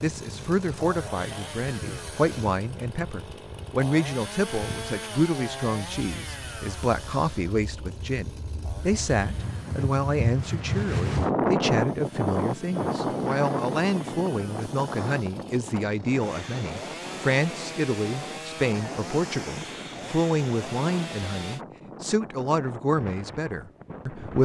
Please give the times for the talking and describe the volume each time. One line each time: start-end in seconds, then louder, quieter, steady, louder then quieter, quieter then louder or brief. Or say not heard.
0.0-24.4 steady.